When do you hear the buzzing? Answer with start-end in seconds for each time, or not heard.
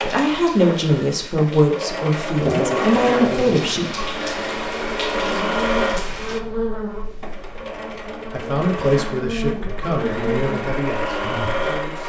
2.4-12.0.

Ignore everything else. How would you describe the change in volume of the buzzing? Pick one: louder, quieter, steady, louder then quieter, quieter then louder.
steady.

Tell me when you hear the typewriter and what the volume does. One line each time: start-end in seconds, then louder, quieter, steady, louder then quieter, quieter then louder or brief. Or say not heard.
not heard.